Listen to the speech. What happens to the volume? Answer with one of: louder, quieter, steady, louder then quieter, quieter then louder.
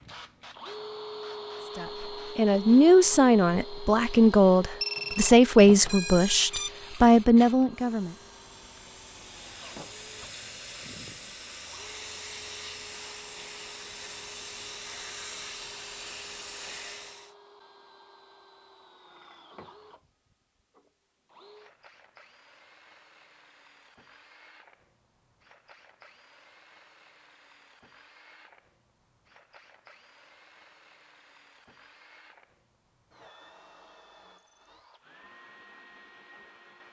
steady.